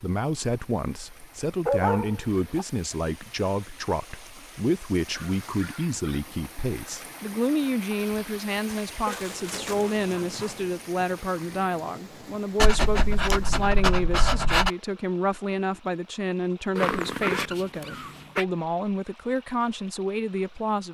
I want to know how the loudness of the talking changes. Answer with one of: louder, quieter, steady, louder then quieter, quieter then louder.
steady.